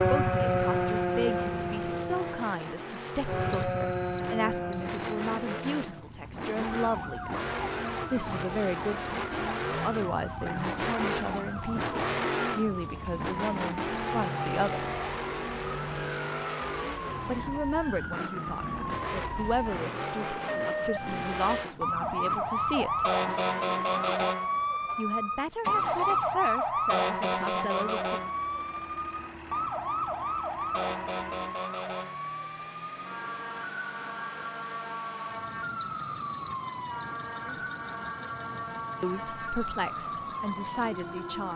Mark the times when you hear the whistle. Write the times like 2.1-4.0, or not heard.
3.5-5.0, 35.8-37.2.